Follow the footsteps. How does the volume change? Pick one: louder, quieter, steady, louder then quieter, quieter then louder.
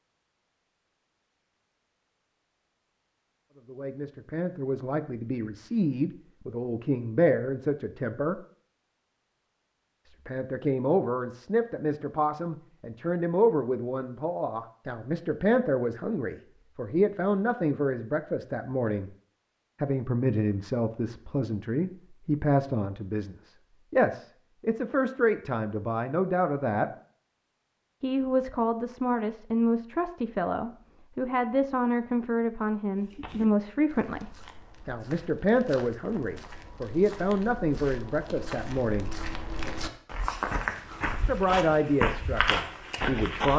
louder.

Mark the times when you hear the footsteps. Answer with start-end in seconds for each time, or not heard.
33.0-43.5.